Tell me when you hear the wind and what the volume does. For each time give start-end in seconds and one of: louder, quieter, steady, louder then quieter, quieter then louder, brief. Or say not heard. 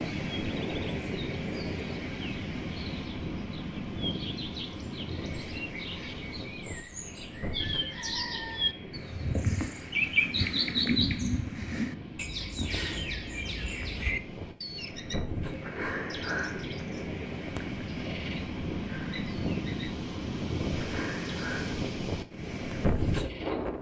0.0-23.7 quieter then louder.